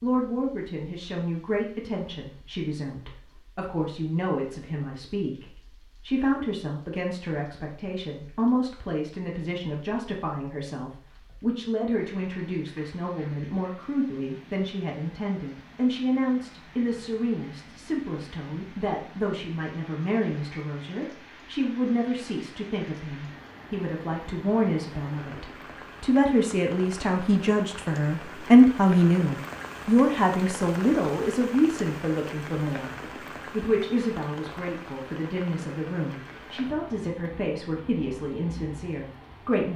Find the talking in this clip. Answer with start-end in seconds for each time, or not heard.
0.0-39.7.